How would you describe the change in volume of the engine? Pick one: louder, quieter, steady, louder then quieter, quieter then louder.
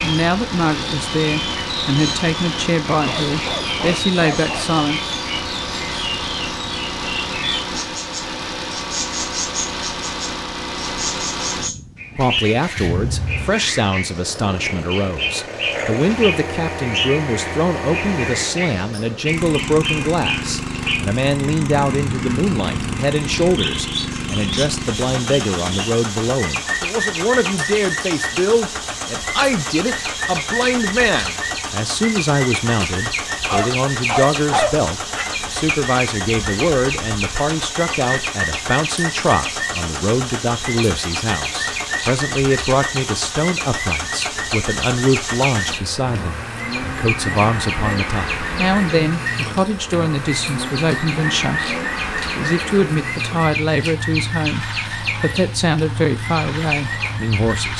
steady.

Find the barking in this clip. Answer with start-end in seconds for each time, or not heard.
2.9-4.7, 33.5-35.2.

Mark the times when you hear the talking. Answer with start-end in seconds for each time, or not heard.
0.0-5.0, 12.2-57.7.